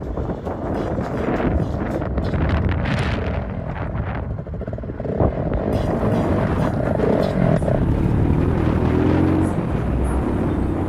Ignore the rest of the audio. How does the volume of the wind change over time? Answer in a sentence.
The loudness of the wind stays about the same.